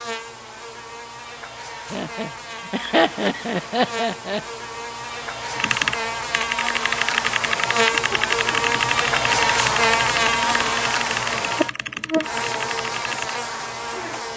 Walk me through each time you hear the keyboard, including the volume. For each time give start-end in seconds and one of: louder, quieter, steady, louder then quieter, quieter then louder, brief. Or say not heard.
5.5-13.4 quieter.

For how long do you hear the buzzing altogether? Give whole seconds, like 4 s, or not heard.
14 s.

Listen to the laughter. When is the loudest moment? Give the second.
3 s.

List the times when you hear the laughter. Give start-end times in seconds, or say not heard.
1.9-4.4.